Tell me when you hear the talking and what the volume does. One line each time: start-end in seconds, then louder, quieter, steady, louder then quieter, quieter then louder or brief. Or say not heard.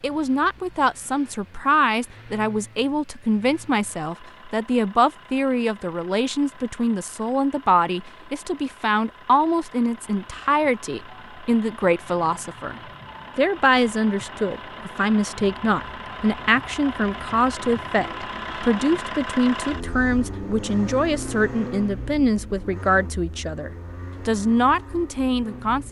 0.0-25.8 steady.